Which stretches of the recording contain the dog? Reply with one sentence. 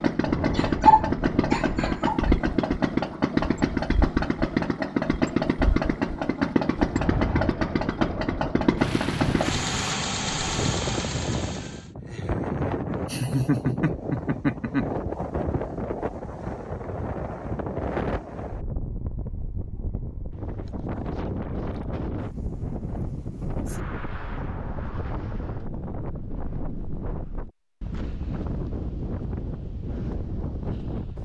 The dog can be heard from 0.6 to 2.2 s.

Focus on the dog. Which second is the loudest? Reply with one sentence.
The volume of the dog peaks at 1 second.